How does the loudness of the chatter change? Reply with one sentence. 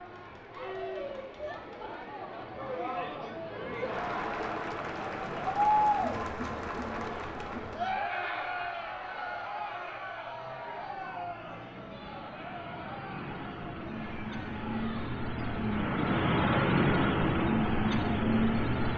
The volume of the chatter goes up, then down.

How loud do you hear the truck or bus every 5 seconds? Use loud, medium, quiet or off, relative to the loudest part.
quiet, quiet, quiet, loud.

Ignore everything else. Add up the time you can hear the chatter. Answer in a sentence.
The chatter can be heard for 19 seconds in total.